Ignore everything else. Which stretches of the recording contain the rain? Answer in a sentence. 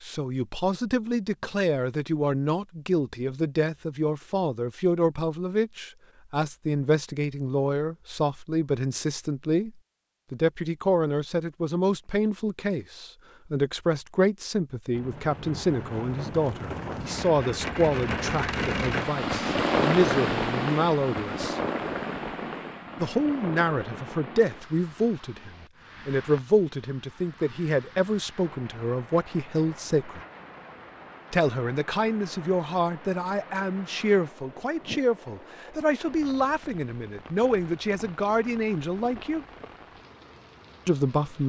You can hear the rain from 14.9 to 41.4 s.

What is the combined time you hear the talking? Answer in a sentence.
The talking can be heard for 37 seconds in total.